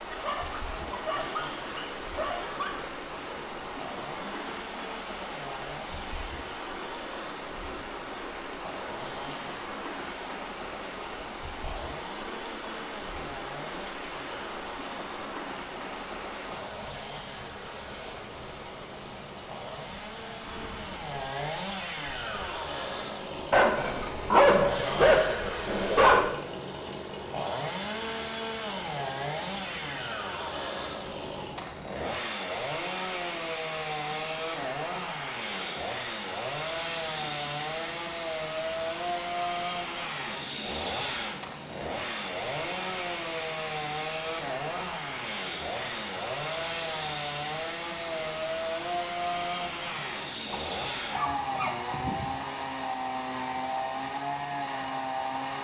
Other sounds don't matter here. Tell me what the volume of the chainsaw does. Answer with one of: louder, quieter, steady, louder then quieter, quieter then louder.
louder.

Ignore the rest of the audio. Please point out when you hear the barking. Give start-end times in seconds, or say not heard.
0.1-3.0, 23.5-26.3, 50.5-52.5.